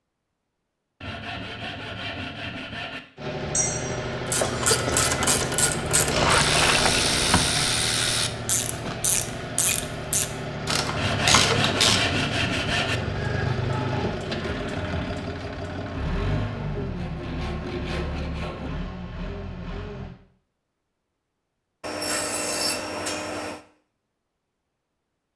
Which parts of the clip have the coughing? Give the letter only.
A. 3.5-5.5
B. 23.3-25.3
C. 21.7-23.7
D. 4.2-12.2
A.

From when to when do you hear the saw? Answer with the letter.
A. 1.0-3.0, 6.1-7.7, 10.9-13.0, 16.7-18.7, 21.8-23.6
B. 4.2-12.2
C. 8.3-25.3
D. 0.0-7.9
A.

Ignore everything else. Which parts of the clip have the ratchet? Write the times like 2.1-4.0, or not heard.
4.2-12.2.